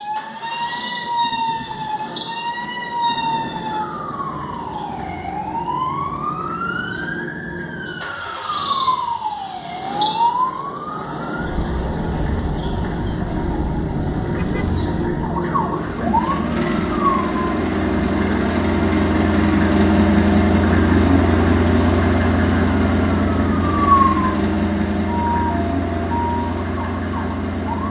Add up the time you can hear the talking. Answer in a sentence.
The talking can't be heard in this clip.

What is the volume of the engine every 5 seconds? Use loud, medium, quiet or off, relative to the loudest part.
quiet, quiet, medium, loud, loud, medium.